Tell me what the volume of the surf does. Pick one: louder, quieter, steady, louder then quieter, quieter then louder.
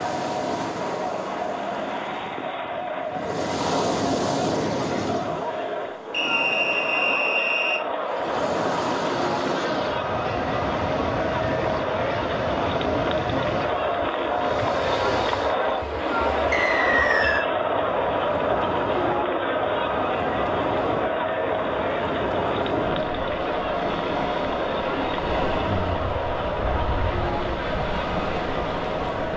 steady.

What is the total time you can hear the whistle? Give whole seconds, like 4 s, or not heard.
3 s.